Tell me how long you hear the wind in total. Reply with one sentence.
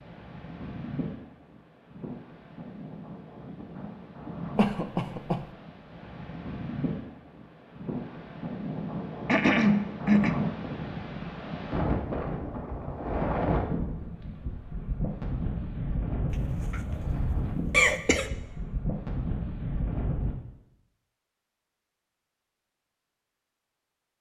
You can hear the wind for 20 seconds altogether.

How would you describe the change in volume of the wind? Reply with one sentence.
The loudness of the wind goes up.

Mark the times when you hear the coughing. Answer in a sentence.
The coughing can be heard from 4.5 to 5.5 s, from 9.2 to 10.3 s and from 16.3 to 18.3 s.